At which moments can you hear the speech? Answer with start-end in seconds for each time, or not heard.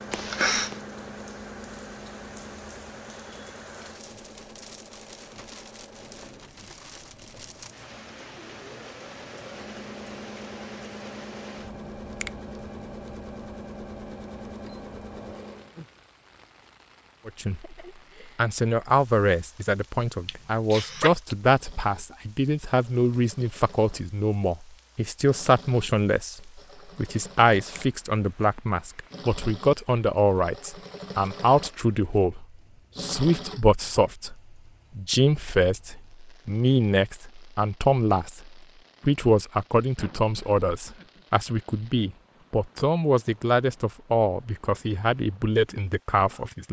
17.2-17.8, 18.4-34.4, 35.0-46.6.